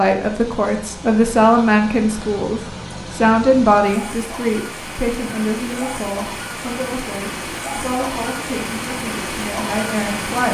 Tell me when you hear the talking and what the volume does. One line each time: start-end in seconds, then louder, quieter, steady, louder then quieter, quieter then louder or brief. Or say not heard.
0.0-10.4 quieter.